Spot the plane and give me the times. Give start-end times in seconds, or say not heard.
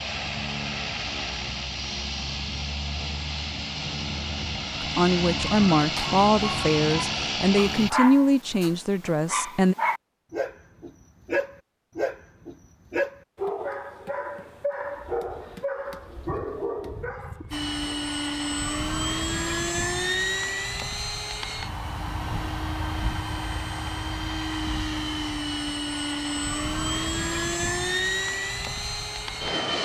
0.0-7.9, 17.5-29.8.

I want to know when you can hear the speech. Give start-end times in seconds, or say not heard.
4.8-9.8.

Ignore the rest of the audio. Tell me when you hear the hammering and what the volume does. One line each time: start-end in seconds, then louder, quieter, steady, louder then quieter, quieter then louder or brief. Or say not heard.
not heard.